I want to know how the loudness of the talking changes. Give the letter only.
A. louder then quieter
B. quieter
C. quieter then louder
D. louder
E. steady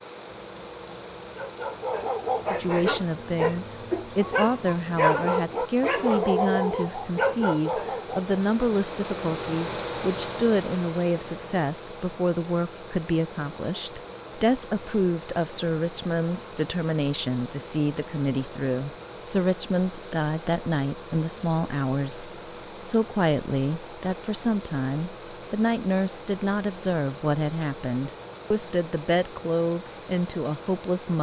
E.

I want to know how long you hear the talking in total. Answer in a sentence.
You can hear the talking for 29 seconds altogether.